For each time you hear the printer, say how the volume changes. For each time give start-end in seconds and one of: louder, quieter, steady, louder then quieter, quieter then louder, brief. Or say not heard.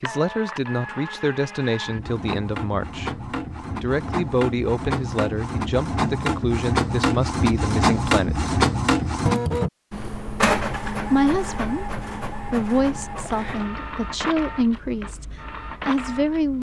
0.0-16.5 louder then quieter.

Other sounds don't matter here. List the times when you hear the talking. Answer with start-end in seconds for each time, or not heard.
0.0-8.5, 11.1-15.2, 15.8-16.5.